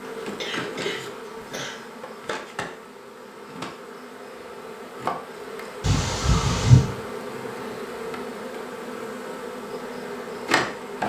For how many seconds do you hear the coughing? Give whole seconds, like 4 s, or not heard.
3 s.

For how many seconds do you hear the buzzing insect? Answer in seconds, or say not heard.
11 s.